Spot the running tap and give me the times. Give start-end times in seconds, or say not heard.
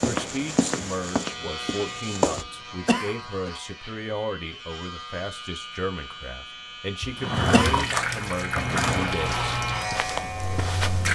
7.7-11.1.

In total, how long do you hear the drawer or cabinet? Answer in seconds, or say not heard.
2 s.